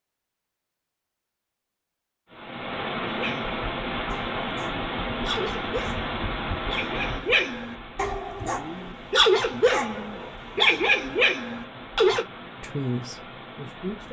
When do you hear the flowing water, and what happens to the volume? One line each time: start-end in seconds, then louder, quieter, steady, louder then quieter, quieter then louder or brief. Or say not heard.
2.3-14.0 quieter.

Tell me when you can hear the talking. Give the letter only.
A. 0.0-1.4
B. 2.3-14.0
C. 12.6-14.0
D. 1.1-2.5
C.